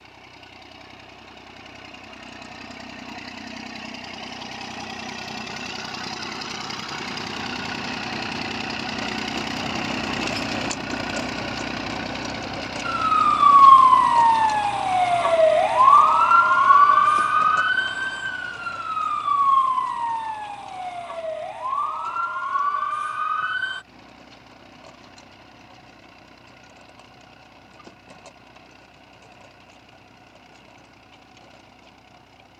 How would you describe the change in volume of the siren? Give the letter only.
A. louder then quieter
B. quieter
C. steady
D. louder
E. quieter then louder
B.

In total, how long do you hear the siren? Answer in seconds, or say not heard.
11 s.